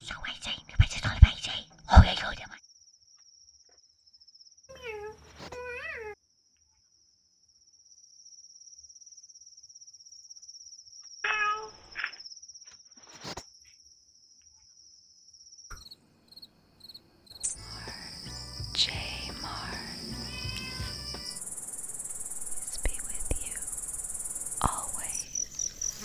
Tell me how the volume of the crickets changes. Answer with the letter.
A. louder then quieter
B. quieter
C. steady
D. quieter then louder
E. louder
E.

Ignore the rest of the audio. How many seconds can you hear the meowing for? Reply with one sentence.
The meowing can be heard for 4 seconds in total.